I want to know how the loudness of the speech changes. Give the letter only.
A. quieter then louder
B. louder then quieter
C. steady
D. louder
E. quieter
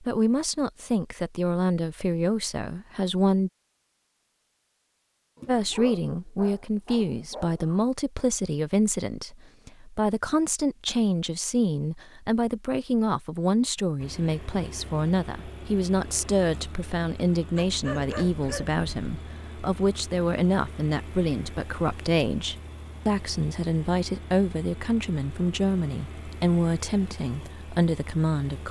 C.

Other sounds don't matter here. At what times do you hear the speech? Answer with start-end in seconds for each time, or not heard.
0.0-3.5, 5.5-28.6.